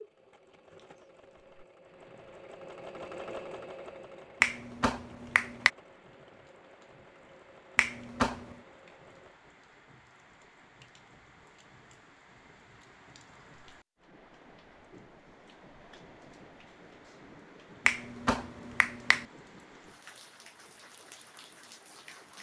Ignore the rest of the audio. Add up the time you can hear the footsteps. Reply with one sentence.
You can't hear the footsteps here.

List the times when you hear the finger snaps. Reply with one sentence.
The finger snaps can be heard from 4.4 to 5.7 s, from 7.8 to 8.6 s and from 17.9 to 19.2 s.